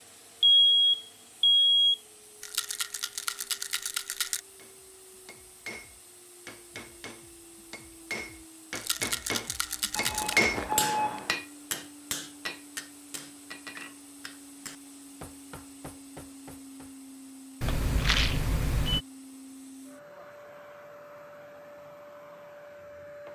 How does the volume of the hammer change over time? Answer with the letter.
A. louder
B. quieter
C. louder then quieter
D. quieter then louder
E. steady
C.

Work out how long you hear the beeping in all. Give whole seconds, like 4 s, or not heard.
4 s.